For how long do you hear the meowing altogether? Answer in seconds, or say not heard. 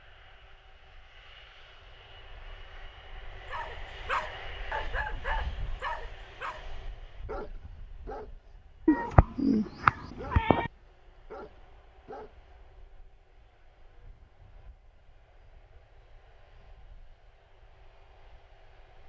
2 s.